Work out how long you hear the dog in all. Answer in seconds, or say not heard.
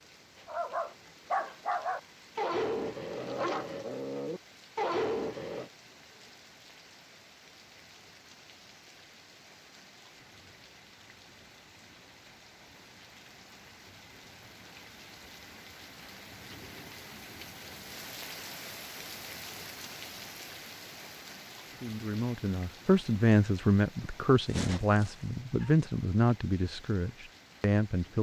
5 s.